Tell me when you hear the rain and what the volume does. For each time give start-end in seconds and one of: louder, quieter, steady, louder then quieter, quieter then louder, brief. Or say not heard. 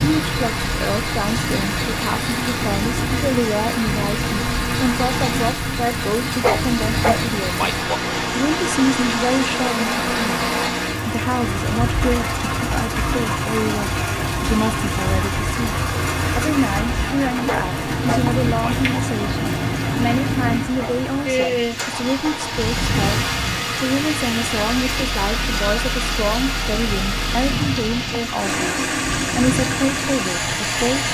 0.0-31.0 steady.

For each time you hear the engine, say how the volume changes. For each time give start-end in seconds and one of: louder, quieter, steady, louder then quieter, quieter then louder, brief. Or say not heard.
0.0-31.0 steady.